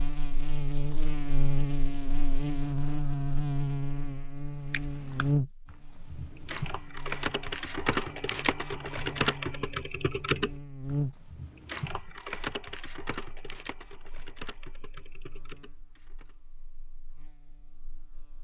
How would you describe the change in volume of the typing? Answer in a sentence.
The volume of the typing goes up, then down.